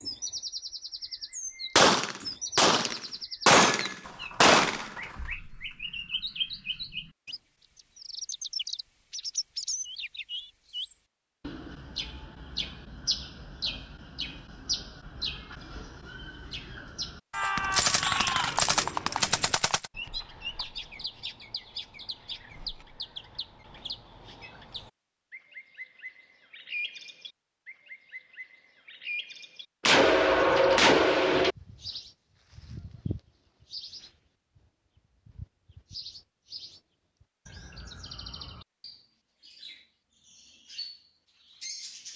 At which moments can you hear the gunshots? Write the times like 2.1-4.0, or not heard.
1.8-4.9, 17.3-19.9, 29.9-31.6.